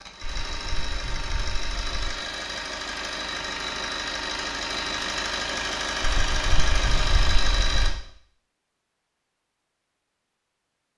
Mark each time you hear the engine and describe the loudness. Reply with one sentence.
You can hear the engine from 0.0 to 7.9 s, getting louder.